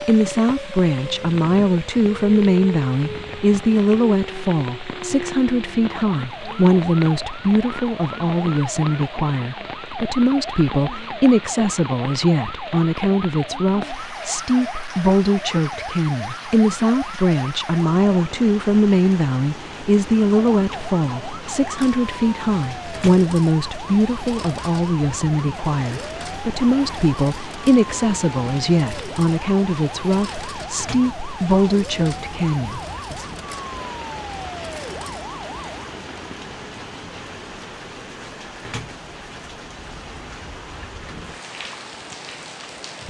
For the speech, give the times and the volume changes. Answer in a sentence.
The speech can be heard from 0.0 to 33.2 s, at a steady volume.